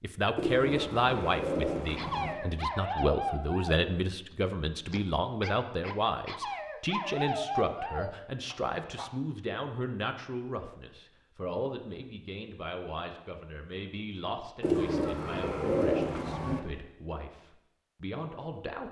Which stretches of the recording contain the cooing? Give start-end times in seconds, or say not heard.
0.3-2.4, 14.6-16.6.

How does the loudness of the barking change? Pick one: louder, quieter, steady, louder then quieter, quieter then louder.
quieter then louder.